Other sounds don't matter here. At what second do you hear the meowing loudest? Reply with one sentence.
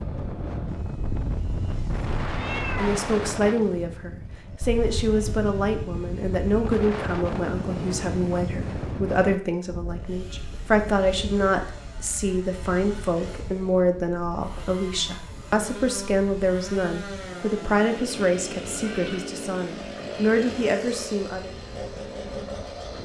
The volume of the meowing peaks at 3 seconds.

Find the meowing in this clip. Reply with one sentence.
The meowing can be heard from 0.9 to 3.0 s and from 18.7 to 19.3 s.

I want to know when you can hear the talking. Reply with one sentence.
The talking can be heard from 2.8 to 21.5 s.